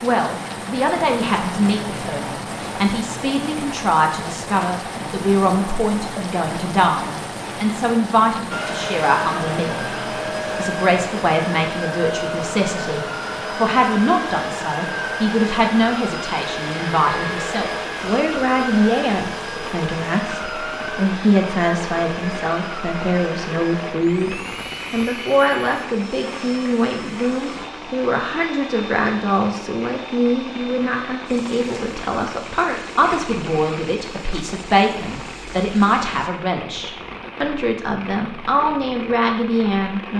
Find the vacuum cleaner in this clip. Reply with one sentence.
The vacuum cleaner can be heard from 8.5 to 36.3 s.